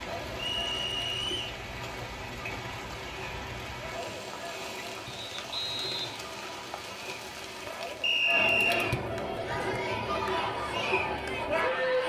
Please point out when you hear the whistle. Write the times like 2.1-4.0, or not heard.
0.3-1.6, 5.0-6.2, 8.0-8.9.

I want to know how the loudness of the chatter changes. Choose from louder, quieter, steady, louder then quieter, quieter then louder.
louder.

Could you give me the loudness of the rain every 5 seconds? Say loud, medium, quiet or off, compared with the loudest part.
loud, loud, off.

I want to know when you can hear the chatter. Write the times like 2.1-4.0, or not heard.
0.0-12.0.